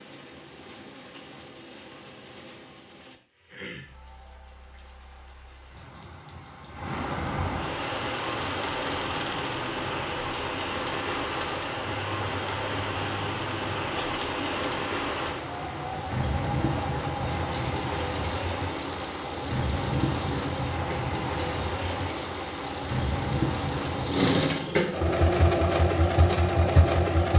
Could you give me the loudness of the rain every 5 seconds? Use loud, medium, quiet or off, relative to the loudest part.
quiet, loud, loud, loud, loud, off.